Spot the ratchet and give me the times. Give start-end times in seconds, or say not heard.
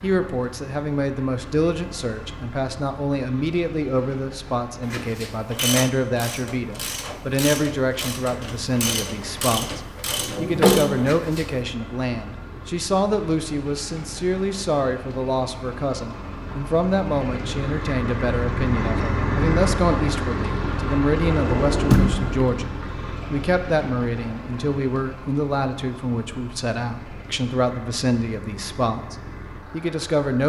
4.8-11.6.